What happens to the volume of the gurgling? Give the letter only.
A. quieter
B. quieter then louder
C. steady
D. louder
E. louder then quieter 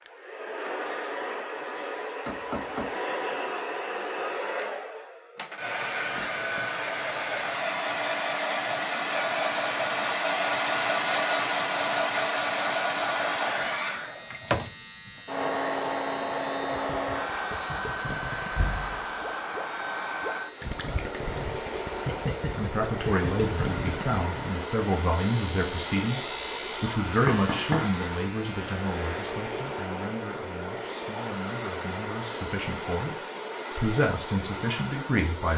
D.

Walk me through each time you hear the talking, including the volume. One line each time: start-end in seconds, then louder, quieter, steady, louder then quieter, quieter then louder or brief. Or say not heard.
22.5-35.5 quieter then louder.